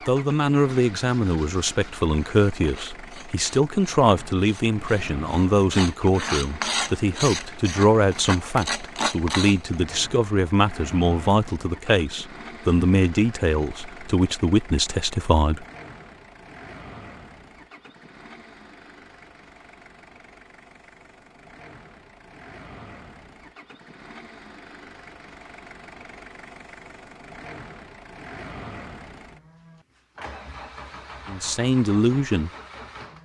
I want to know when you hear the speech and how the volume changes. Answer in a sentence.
The speech can be heard from 0.1 to 15.7 s, at a steady volume; and briefly from 31.2 to 32.5 s.